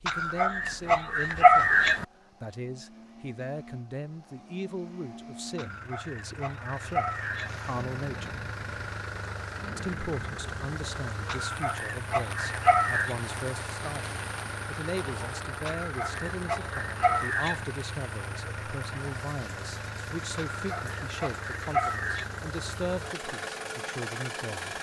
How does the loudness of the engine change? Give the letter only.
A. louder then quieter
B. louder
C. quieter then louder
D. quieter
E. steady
B.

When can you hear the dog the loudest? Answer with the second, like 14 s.
2 s.